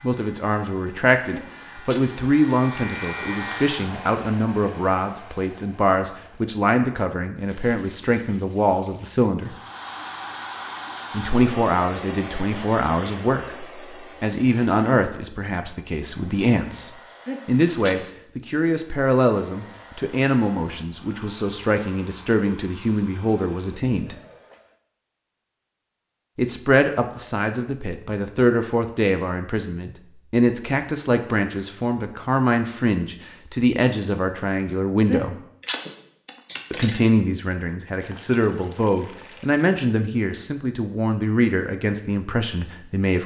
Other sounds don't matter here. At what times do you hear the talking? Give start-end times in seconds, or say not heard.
0.0-9.6, 11.1-24.1, 26.4-35.4, 36.7-43.2.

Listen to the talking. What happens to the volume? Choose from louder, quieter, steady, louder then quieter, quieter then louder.
steady.